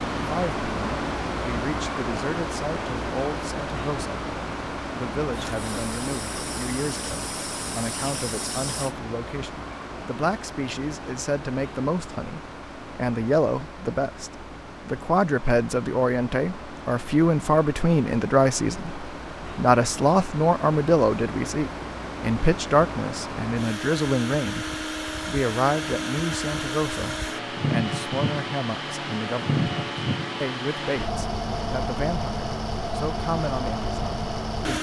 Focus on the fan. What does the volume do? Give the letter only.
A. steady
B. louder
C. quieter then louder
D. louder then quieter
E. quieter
C.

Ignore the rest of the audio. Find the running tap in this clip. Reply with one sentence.
The running tap can be heard from 5.3 to 8.9 s.